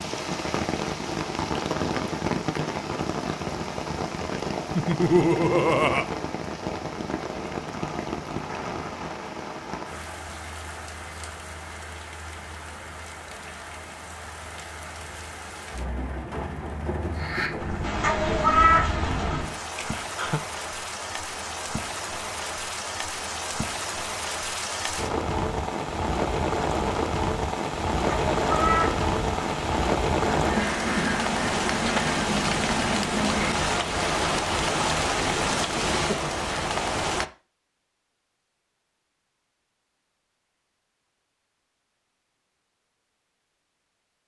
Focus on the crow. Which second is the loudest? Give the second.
19 s.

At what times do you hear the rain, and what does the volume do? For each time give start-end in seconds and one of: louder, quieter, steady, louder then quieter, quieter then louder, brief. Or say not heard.
0.0-37.2 quieter then louder.